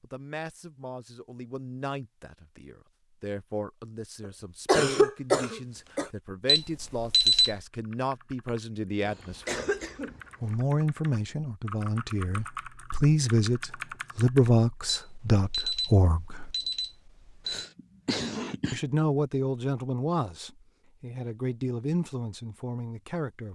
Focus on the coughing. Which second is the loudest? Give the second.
5 s.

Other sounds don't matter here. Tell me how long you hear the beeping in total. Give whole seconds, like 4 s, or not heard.
4 s.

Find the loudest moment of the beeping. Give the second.
7 s.